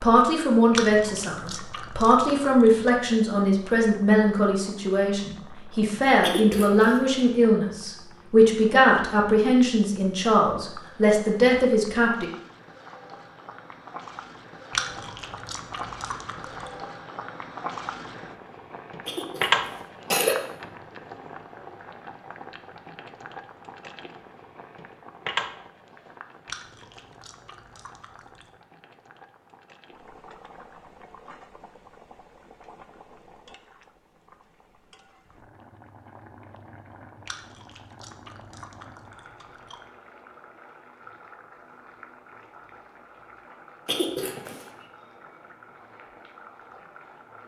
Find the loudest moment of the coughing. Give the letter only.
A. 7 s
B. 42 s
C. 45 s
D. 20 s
D.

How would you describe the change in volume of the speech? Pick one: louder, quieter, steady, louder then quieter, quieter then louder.
steady.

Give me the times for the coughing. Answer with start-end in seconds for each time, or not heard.
6.2-7.0, 19.1-20.4, 43.9-44.6.